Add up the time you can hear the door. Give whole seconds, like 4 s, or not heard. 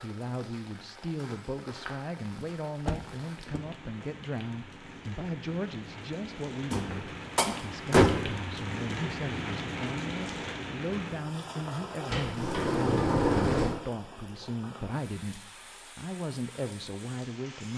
5 s.